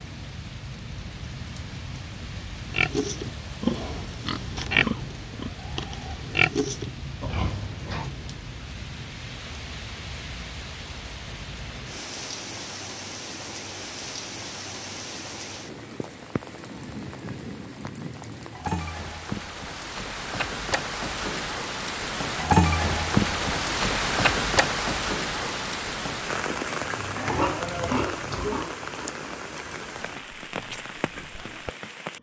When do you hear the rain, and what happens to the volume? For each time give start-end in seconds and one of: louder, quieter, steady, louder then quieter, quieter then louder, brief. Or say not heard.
0.0-32.1 louder then quieter.